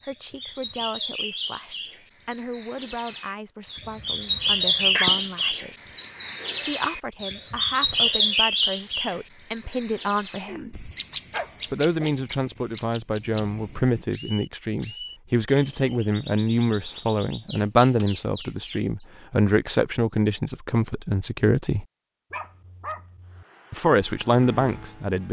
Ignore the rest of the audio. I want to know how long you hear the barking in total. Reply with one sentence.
The barking can be heard for 4 seconds in total.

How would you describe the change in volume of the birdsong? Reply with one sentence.
The loudness of the birdsong goes up, then down.